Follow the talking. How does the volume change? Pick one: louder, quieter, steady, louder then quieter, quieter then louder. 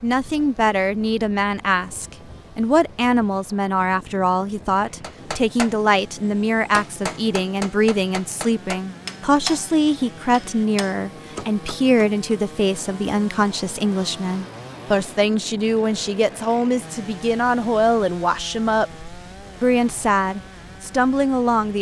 steady.